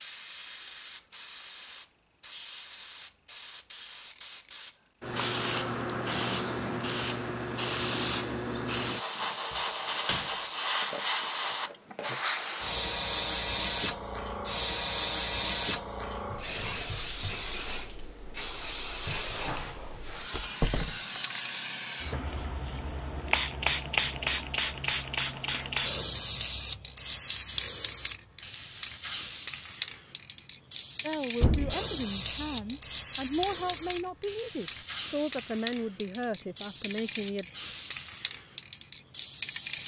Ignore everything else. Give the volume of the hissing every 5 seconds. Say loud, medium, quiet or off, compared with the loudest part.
medium, loud, loud, loud, loud, loud, loud, loud.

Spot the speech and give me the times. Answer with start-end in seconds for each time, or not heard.
31.0-37.5.